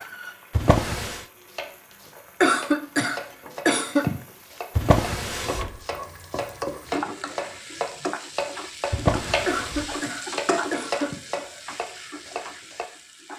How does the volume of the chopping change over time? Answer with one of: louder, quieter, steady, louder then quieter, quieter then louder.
louder.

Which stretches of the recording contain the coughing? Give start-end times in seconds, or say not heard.
2.4-4.2, 9.4-11.2.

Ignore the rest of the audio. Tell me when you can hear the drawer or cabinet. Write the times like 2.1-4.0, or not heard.
0.5-1.2, 4.8-5.8, 8.9-9.9.